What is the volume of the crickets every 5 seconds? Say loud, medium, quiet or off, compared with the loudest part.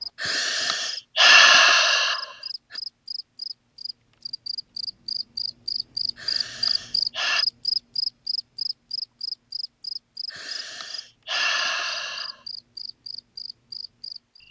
medium, loud, medium.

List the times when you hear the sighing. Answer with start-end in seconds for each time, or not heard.
0.2-2.2, 6.2-7.5, 10.3-12.3.